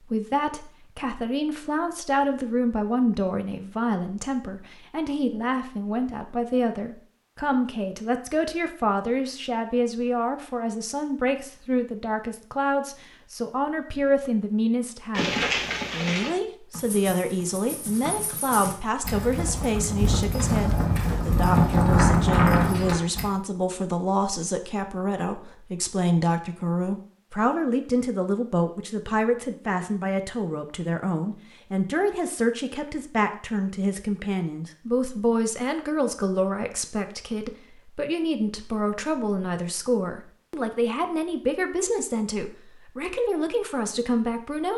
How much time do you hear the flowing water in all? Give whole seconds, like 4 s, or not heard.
not heard.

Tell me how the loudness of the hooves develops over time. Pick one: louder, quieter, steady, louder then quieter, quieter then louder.
quieter then louder.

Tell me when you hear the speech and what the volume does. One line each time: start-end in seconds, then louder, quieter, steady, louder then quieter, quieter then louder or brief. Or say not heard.
0.0-44.7 steady.